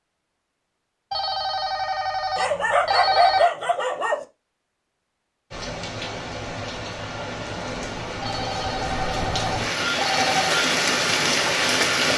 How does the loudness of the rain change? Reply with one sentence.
The loudness of the rain goes up.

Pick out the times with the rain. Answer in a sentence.
You can hear the rain from 5.5 to 12.1 s.